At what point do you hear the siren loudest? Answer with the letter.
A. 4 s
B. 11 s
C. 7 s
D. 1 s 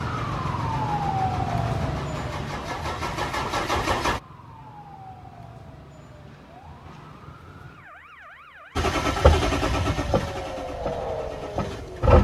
D.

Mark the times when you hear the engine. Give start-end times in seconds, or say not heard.
0.0-4.2, 8.8-12.1.